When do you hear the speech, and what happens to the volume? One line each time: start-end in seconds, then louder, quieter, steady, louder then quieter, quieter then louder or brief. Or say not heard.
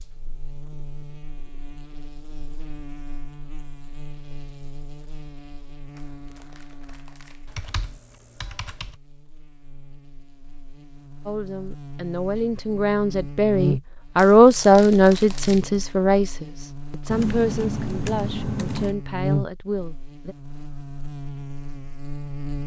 11.2-20.4 louder then quieter.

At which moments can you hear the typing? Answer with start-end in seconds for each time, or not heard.
7.5-8.9, 17.1-18.9.